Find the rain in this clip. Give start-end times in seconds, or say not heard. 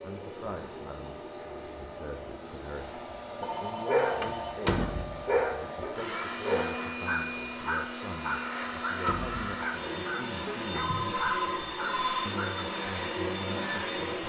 not heard.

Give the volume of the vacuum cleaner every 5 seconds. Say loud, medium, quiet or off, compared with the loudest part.
medium, loud, loud.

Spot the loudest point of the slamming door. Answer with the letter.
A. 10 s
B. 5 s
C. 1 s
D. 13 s
B.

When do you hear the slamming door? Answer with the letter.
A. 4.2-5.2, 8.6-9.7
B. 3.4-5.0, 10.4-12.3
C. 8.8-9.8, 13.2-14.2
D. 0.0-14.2
A.